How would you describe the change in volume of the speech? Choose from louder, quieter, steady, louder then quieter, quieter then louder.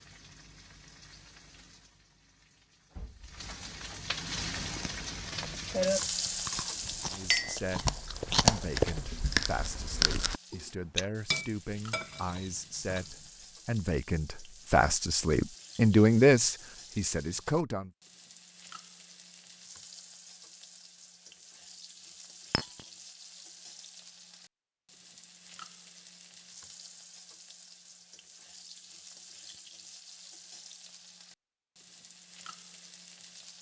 louder.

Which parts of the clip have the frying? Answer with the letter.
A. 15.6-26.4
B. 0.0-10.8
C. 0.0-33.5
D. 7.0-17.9
C.